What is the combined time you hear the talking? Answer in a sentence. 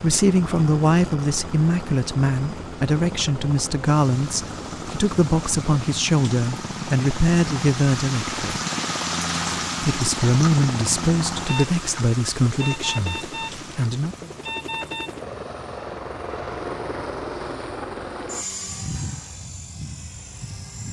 You can hear the talking for 13 seconds altogether.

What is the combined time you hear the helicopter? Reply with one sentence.
You can hear the helicopter for 21 seconds altogether.